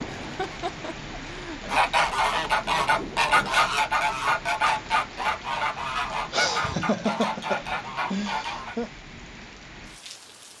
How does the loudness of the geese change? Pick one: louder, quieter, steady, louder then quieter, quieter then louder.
quieter.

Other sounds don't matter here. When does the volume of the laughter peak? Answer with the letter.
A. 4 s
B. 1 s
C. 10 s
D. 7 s
D.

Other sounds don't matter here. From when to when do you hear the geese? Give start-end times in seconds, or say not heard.
1.6-8.8.